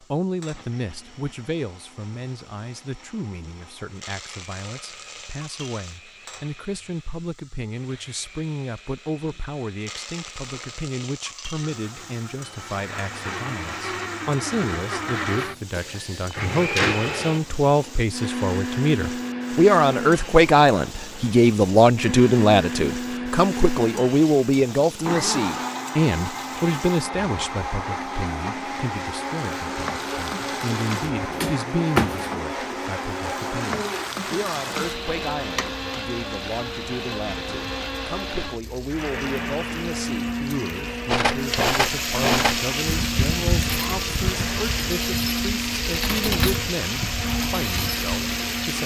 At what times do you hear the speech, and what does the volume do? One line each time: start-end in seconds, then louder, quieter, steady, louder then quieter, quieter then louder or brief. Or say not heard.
0.0-48.8 louder then quieter.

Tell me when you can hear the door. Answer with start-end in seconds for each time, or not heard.
15.4-16.9, 31.3-32.3.